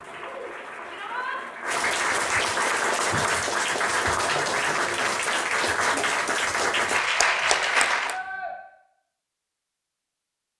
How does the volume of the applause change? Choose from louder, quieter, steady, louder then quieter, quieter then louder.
louder.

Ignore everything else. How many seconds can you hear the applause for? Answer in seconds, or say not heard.
8 s.